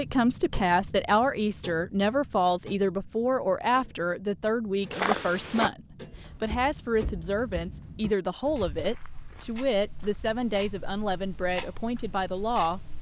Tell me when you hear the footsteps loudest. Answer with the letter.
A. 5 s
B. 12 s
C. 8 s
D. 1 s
A.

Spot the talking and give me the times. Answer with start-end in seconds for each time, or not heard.
0.0-12.9.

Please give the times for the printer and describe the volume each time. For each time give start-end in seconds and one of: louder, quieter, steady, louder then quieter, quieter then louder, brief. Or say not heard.
not heard.